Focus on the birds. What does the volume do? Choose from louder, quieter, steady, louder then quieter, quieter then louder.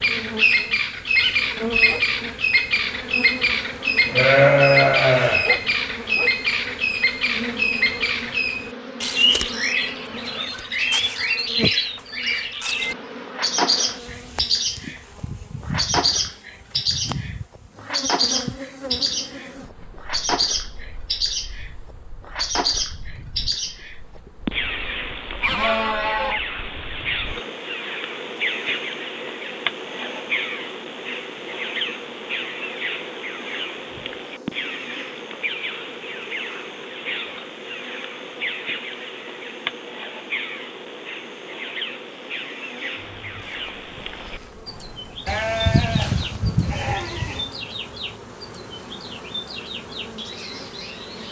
quieter.